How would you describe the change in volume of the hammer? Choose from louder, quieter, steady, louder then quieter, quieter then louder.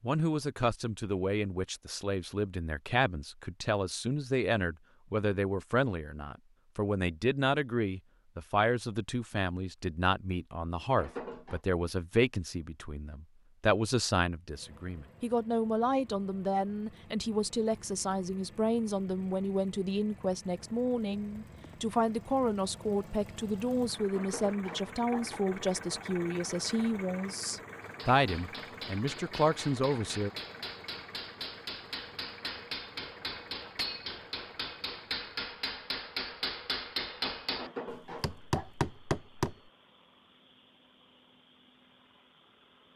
louder.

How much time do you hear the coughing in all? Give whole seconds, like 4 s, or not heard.
3 s.